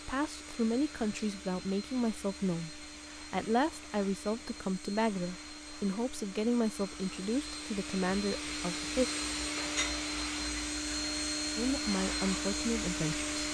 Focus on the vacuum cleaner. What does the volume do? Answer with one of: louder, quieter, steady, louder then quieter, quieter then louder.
louder.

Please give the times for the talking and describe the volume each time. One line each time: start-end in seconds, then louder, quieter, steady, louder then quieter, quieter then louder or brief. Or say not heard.
0.1-9.1 steady
11.6-13.2 brief.